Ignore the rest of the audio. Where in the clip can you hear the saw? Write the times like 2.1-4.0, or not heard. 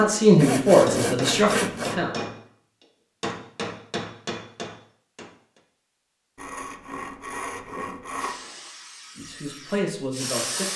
0.3-1.9, 6.3-8.4.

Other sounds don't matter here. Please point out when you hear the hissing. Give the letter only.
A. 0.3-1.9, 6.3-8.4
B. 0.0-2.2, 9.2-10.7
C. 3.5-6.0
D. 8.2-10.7
D.